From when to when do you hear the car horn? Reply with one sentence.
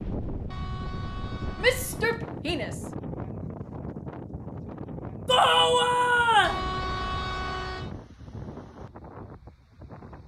You can hear the car horn from 0.5 to 2.0 s and from 6.4 to 7.9 s.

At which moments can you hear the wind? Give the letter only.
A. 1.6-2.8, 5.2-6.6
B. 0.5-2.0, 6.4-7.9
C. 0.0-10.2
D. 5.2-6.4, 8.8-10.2
C.